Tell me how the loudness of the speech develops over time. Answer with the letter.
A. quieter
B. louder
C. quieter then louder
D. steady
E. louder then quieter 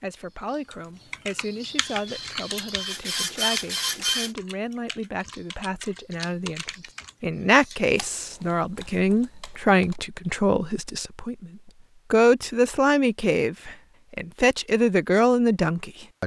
B.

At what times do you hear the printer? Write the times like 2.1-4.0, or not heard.
1.8-4.3.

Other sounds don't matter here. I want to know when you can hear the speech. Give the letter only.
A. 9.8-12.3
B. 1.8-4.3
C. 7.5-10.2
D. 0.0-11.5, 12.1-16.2
D.